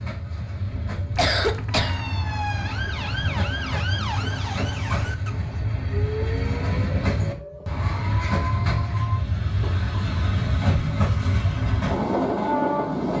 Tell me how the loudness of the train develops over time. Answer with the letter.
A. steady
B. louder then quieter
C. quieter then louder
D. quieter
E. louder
E.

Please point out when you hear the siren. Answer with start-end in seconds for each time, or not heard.
1.7-9.2.